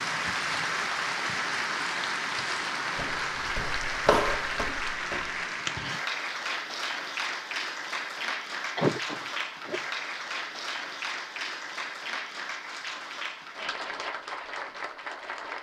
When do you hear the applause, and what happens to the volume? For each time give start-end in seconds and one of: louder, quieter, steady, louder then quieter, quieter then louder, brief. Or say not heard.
0.0-15.5 quieter.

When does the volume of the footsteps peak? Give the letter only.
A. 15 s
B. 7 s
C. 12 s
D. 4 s
D.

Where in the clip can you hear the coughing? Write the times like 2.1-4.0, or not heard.
8.8-9.8.